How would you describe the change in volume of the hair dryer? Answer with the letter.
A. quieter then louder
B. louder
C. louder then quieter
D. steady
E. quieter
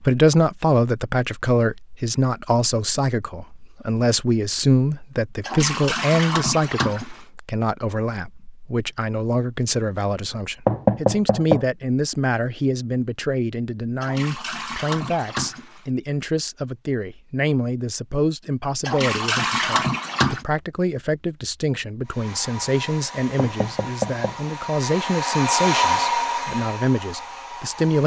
C.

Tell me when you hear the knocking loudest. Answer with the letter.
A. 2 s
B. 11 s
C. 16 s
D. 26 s
B.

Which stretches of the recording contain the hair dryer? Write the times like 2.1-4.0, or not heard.
22.1-28.0.